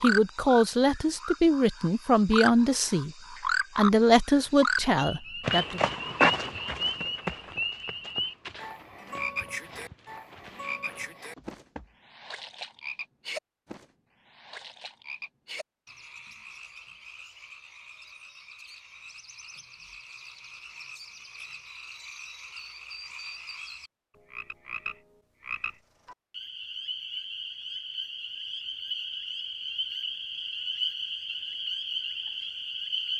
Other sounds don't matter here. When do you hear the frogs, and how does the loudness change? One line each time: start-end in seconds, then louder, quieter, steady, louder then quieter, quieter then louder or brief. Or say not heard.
0.0-33.1 quieter then louder.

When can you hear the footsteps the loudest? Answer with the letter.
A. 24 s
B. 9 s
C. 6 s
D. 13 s
C.